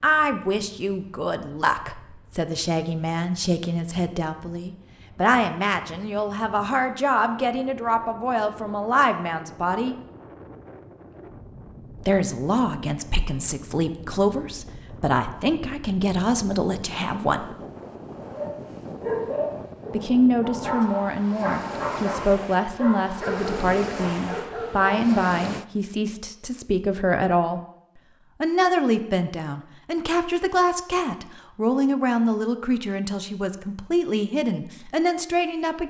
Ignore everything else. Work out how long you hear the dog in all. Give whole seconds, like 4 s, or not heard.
7 s.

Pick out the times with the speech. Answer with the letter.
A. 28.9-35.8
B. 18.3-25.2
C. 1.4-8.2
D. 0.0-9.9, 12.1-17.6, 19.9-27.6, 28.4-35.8
D.